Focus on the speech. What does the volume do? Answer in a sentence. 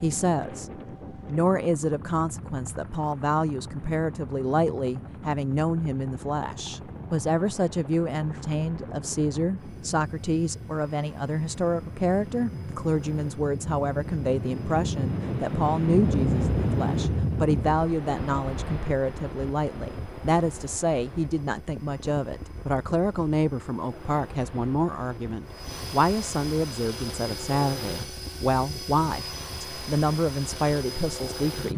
The volume of the speech stays about the same.